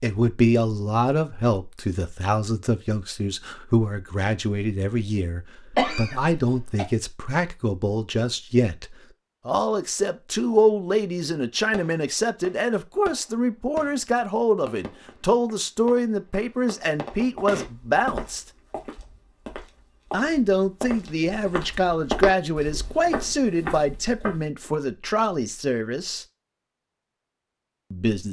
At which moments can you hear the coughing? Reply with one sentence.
The coughing can be heard from 5.7 to 6.8 s.